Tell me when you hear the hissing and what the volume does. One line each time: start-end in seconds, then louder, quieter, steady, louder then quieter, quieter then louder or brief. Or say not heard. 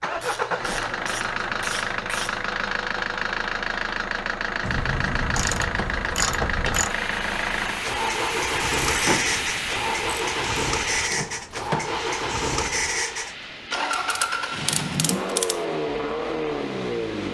6.8-17.2 quieter.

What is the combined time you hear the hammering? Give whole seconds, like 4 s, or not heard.
not heard.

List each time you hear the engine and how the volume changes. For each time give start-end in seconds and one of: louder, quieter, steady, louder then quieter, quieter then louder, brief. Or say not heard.
0.0-17.2 steady.